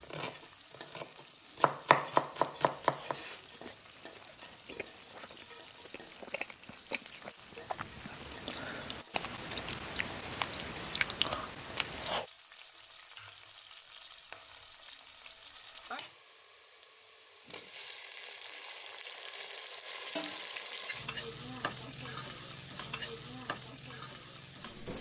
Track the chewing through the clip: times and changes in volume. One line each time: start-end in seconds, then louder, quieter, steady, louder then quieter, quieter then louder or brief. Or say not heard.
2.5-12.2 louder.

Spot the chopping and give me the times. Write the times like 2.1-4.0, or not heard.
0.0-3.1.